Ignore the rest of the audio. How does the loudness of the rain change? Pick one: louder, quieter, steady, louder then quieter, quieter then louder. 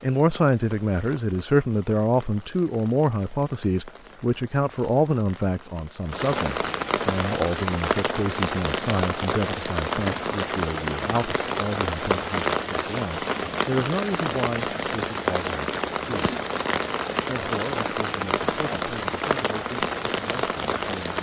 louder.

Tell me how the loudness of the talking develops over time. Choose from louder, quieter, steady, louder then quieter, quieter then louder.
quieter.